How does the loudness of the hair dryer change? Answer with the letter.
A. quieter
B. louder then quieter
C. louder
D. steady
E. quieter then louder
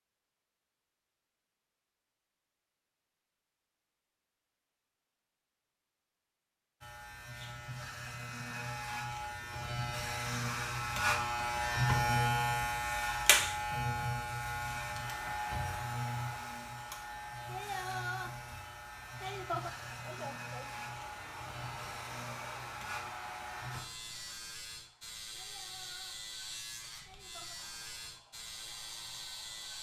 A.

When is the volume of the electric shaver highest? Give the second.
12 s.